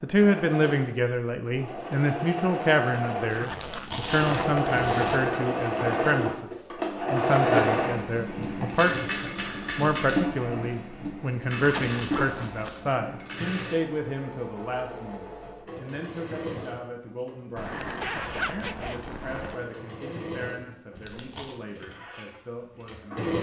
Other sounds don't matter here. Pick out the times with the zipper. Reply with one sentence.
The zipper can be heard from 3.3 to 4.7 s, from 11.6 to 13.0 s and from 17.6 to 19.6 s.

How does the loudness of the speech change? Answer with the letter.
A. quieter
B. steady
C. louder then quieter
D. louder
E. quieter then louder
A.